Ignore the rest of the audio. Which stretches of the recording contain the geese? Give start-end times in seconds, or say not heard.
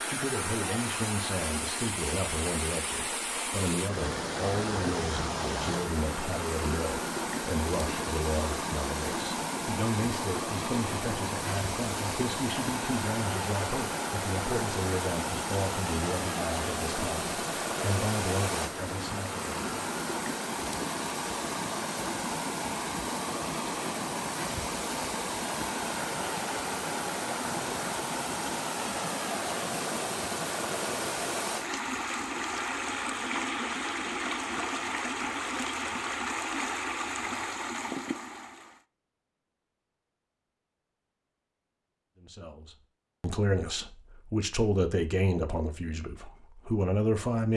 not heard.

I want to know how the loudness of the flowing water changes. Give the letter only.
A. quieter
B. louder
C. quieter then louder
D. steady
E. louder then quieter
D.